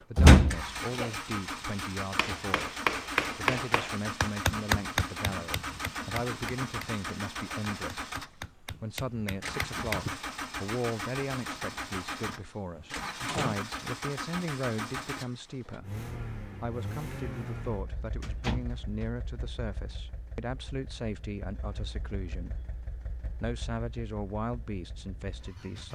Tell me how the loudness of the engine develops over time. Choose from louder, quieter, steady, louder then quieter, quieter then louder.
quieter.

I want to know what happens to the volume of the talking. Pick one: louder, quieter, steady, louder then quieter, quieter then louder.
steady.